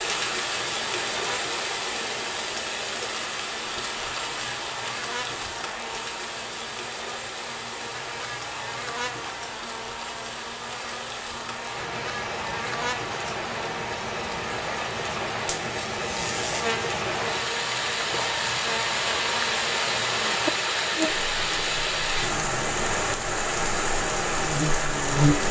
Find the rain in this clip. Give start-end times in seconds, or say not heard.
0.0-25.4.